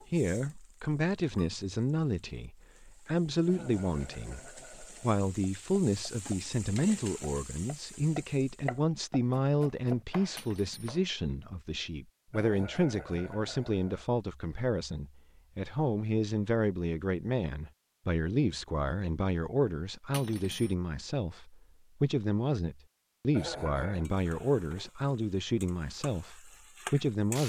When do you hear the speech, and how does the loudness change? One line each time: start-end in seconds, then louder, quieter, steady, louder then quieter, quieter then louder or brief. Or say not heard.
0.1-27.4 steady.